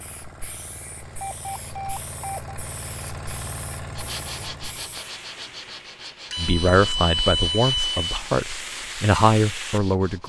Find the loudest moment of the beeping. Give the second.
7 s.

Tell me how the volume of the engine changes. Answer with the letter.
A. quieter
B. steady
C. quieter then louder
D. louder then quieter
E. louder
E.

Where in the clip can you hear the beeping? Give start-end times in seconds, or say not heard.
1.1-2.6, 6.3-8.2.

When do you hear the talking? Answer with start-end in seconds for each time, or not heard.
6.3-10.2.